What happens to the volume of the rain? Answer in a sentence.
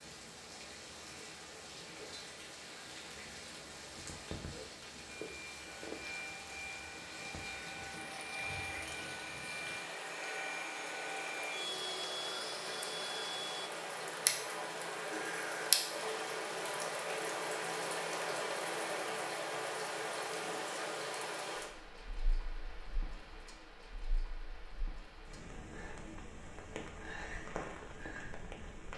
The volume of the rain goes up, then down.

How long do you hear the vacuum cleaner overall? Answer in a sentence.
You can hear the vacuum cleaner for 9 seconds altogether.